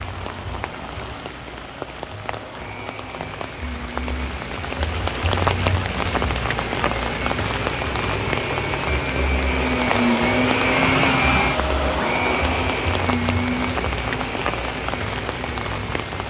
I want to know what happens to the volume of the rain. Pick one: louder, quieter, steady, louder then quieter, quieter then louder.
louder.